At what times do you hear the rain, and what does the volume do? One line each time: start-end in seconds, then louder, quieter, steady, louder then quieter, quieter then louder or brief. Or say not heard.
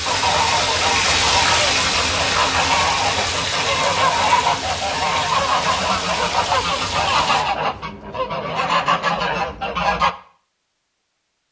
0.0-7.5 quieter.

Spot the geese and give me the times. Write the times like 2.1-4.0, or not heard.
0.1-10.2.